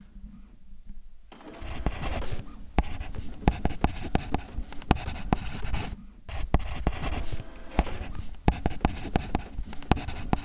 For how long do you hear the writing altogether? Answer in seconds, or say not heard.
9 s.